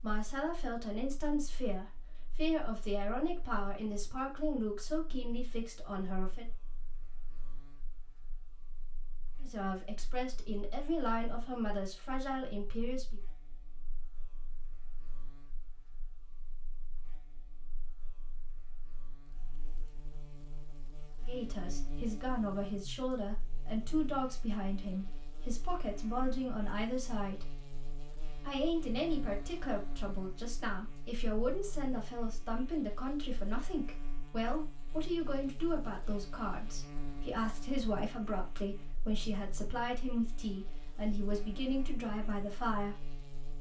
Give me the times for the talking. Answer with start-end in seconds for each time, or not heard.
0.0-6.5, 9.4-13.2, 21.2-27.4, 28.4-43.0.